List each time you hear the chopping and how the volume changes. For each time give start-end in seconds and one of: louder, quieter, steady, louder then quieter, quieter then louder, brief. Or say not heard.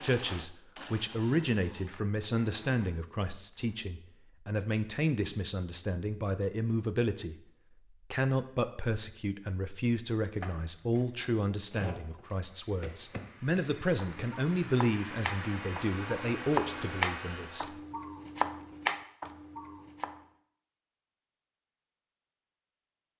10.3-20.2 louder.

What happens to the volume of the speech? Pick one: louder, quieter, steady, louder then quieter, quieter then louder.
steady.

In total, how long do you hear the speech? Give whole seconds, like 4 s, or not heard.
17 s.